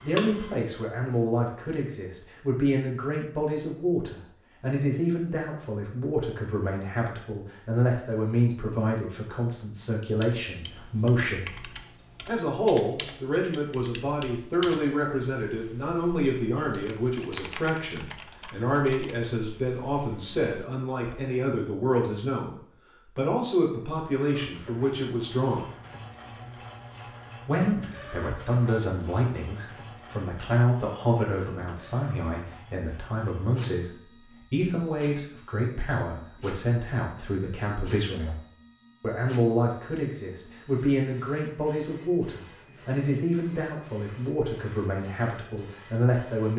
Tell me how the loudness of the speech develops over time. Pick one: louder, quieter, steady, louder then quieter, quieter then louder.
steady.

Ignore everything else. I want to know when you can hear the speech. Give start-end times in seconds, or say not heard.
0.0-11.5, 12.2-25.6, 27.4-38.4, 39.0-46.5.